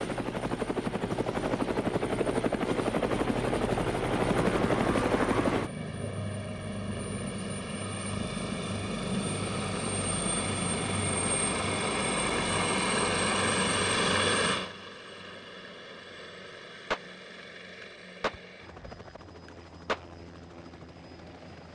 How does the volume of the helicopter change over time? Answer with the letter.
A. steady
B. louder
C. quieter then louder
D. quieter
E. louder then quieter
D.